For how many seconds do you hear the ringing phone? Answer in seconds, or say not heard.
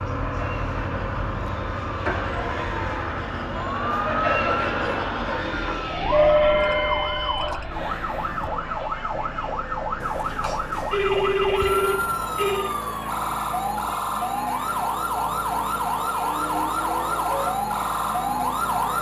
4 s.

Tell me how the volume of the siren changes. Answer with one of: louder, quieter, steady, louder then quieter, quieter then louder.
louder.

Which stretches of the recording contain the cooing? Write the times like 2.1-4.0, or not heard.
not heard.